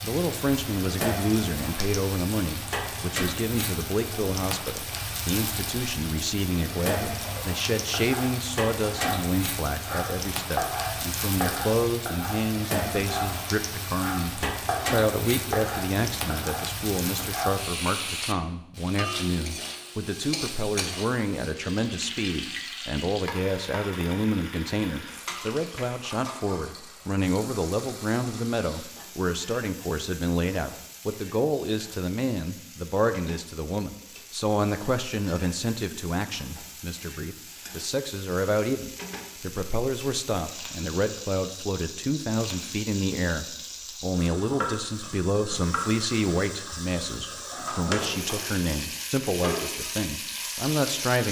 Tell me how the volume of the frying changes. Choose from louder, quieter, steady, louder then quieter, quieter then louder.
quieter then louder.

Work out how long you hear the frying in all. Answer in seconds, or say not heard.
51 s.